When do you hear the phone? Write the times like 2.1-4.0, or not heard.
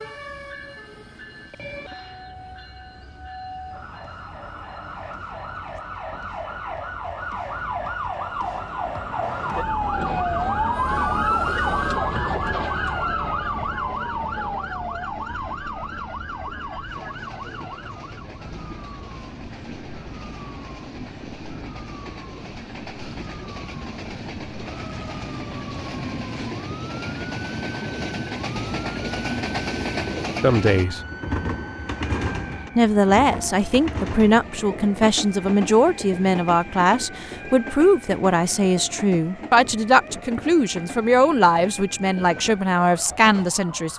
not heard.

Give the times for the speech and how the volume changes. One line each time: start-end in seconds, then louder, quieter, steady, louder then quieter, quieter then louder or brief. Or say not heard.
30.4-31.0 brief
32.8-43.9 steady.